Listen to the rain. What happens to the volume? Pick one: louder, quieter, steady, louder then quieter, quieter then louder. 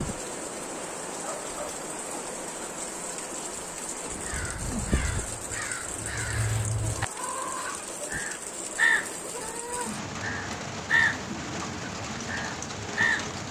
steady.